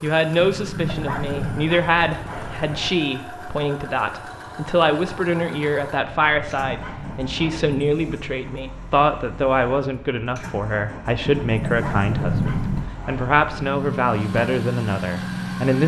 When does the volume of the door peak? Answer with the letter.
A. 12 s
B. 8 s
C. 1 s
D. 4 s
A.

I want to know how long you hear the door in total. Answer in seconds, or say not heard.
4 s.